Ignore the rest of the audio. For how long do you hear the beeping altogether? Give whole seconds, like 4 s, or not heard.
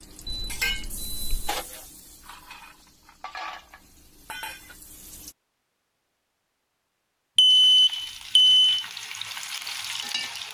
3 s.